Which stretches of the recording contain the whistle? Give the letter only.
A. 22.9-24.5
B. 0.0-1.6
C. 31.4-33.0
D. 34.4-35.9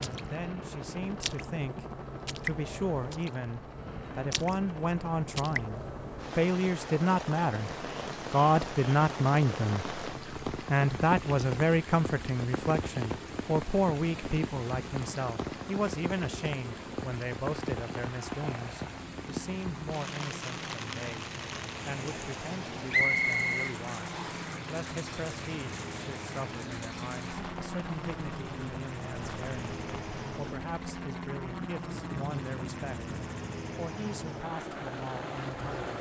A.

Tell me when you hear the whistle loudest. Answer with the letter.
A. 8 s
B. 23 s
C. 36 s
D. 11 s
B.